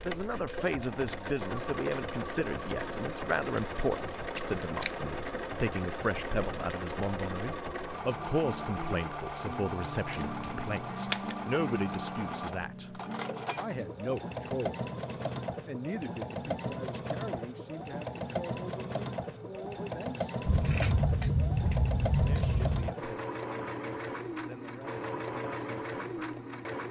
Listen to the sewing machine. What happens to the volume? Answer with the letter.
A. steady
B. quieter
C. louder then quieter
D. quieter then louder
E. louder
A.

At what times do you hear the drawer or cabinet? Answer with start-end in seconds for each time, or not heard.
not heard.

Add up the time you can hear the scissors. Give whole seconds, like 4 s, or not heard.
5 s.